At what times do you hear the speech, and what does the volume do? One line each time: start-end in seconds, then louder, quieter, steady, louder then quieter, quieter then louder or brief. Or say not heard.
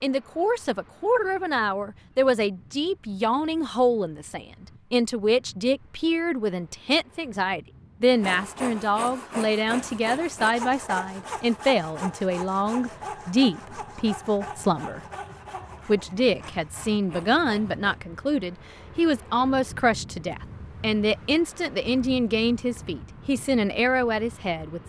0.0-15.0 steady
15.8-24.8 steady.